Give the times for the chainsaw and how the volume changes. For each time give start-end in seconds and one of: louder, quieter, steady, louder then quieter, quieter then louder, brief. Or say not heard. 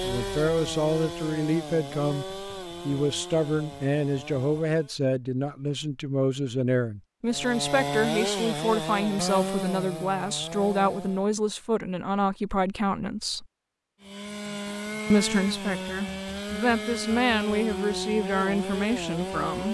0.0-5.0 quieter
7.2-11.3 quieter
14.0-19.6 steady.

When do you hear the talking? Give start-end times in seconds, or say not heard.
0.0-13.4, 15.1-19.6.